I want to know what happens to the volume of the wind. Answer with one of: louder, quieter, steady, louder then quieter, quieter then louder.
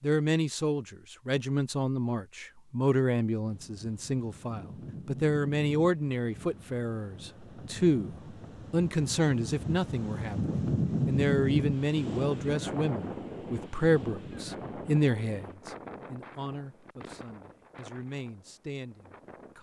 louder then quieter.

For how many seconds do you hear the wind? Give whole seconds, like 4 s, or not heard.
16 s.